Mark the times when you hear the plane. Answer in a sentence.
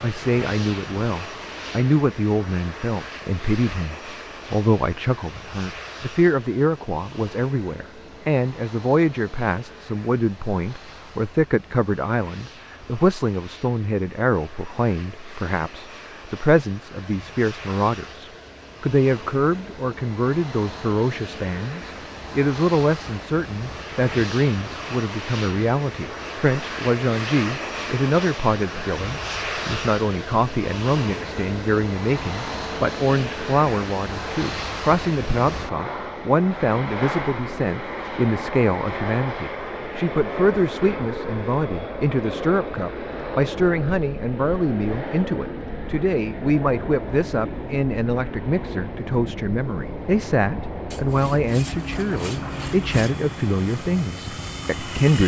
The plane can be heard from 0.0 to 55.2 s.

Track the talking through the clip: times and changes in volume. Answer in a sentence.
The talking can be heard from 0.0 to 55.2 s, at a steady volume.